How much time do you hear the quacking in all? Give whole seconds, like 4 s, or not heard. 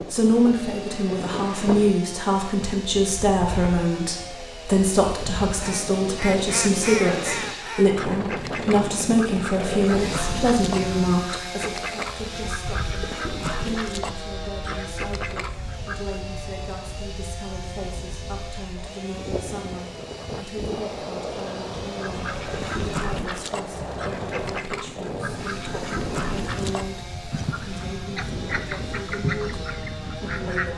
19 s.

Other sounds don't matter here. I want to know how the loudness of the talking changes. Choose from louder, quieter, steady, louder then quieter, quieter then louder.
quieter.